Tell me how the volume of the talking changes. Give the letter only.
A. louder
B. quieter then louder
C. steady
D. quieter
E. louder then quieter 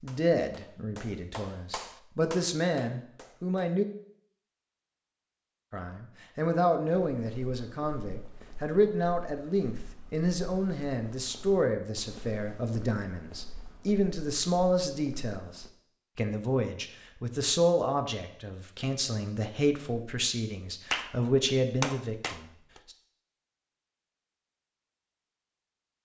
C.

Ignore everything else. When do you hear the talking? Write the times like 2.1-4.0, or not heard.
0.0-3.9, 5.7-22.4.